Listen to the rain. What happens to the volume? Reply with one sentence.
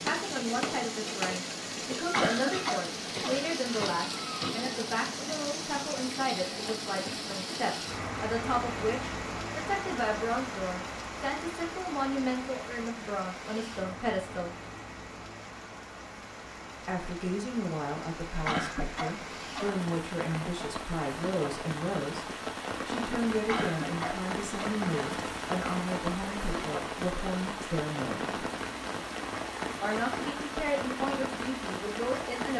The loudness of the rain goes down, then up.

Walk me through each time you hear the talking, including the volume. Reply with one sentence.
The talking can be heard from 0.0 to 14.6 s, at a steady volume; from 16.9 to 28.4 s, at a steady volume; and briefly from 29.8 to 32.5 s.